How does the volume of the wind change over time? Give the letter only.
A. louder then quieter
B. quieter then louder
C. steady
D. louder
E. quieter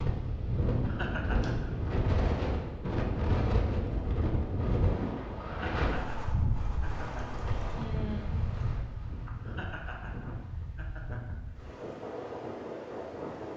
E.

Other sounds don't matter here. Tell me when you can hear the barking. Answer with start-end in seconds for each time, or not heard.
not heard.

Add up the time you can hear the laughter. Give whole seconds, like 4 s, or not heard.
5 s.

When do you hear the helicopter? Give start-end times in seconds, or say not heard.
not heard.